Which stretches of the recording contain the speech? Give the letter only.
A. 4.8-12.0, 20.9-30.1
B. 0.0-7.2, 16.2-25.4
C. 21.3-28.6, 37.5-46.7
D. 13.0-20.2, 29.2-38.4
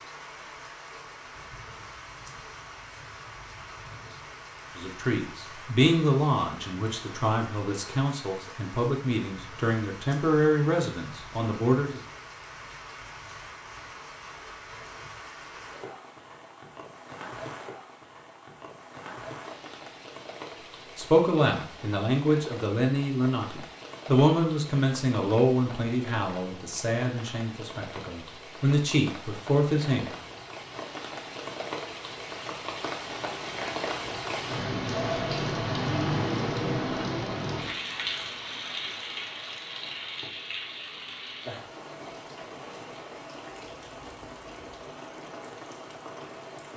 A.